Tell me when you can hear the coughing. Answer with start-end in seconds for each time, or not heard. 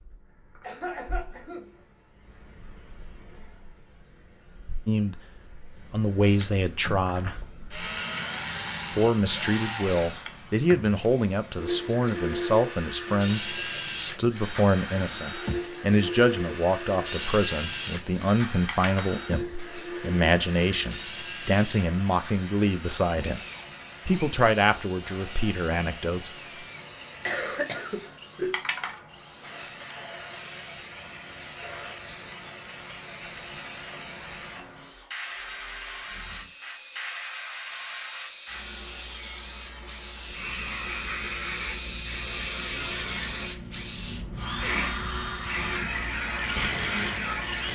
0.6-1.8, 27.2-28.6.